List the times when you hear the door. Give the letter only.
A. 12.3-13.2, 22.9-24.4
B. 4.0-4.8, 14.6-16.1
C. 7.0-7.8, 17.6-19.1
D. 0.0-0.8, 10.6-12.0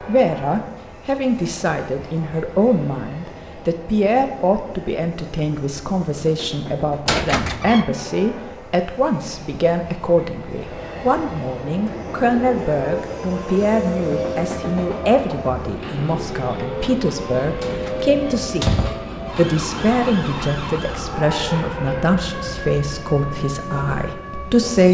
C.